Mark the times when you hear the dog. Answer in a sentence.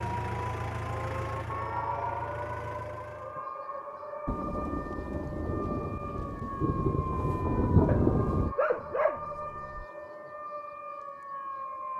The dog can be heard from 7.8 to 9.8 s.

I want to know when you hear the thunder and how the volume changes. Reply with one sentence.
The thunder can be heard from 4.2 to 8.6 s, getting louder.